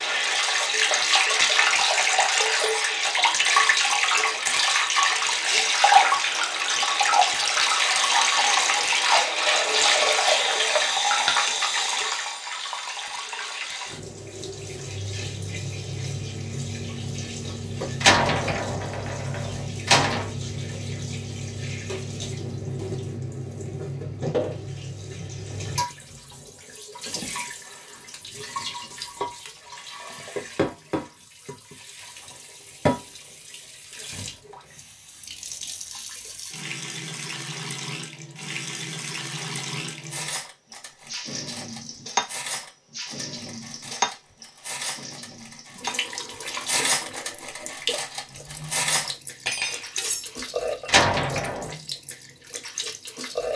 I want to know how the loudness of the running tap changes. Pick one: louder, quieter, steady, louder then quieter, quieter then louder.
quieter.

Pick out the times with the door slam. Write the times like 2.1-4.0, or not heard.
18.0-20.3, 50.9-51.8.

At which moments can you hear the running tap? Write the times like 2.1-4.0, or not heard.
0.0-53.5.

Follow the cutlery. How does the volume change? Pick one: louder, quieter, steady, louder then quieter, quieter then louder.
louder.